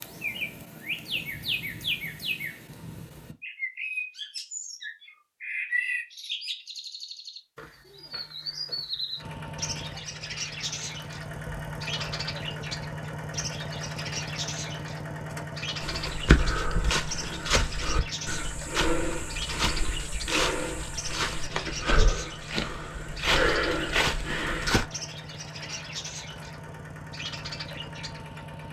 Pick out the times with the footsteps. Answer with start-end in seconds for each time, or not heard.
15.8-24.9.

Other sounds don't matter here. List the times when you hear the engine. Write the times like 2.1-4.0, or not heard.
9.2-28.6.